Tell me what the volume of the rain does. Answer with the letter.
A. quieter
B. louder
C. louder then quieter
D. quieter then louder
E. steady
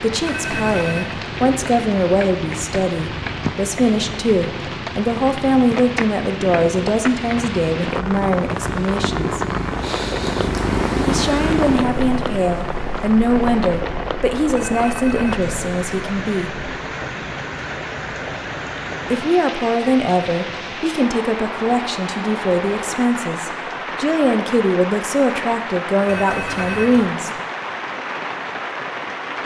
E.